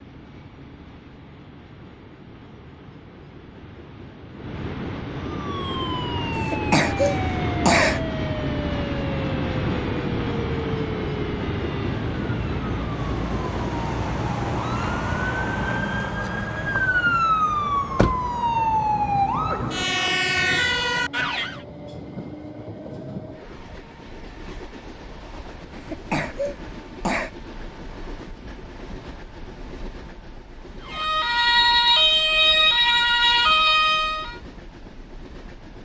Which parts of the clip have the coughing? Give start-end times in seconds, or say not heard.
6.3-8.0, 25.8-27.3.